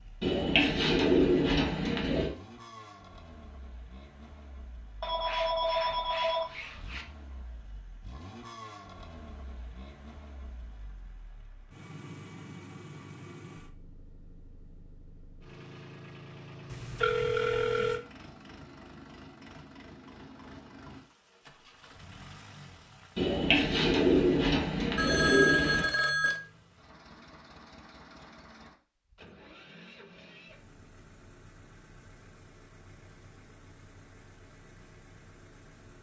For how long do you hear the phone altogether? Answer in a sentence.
You can hear the phone for 5 seconds altogether.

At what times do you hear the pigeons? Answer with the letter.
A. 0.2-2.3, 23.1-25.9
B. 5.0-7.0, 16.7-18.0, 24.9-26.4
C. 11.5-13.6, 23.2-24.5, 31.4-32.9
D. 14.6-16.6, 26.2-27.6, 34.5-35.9
A.